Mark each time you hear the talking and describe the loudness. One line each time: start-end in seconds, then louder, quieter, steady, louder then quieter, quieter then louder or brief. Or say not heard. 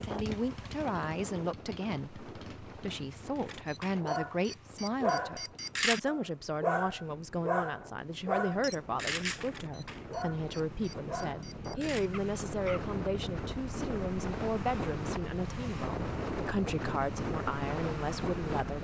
0.0-18.8 steady.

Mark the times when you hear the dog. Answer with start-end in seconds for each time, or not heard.
3.4-12.8.